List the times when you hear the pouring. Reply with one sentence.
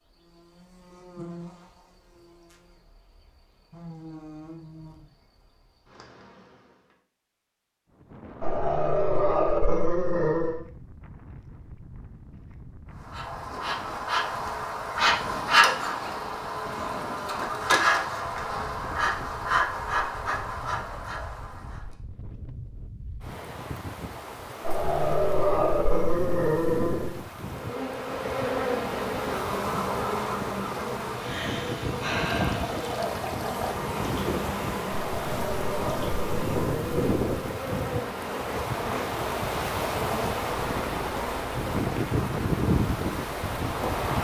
You can hear the pouring from 32.4 to 33.8 s.